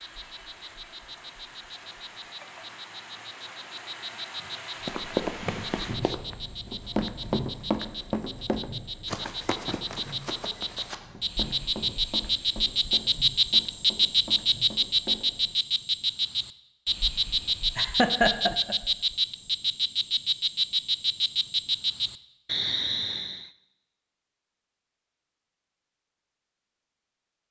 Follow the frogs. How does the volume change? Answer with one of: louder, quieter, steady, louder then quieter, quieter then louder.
louder.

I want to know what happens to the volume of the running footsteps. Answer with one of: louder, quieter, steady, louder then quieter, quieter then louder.
quieter.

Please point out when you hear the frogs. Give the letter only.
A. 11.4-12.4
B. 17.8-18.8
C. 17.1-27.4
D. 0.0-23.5
D.